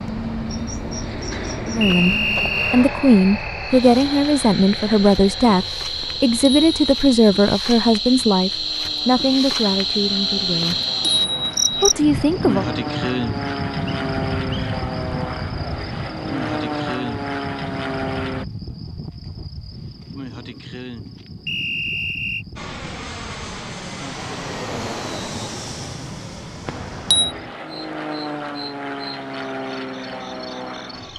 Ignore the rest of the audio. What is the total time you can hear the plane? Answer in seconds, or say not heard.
27 s.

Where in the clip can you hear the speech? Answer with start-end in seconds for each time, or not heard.
1.6-10.8, 11.8-12.7.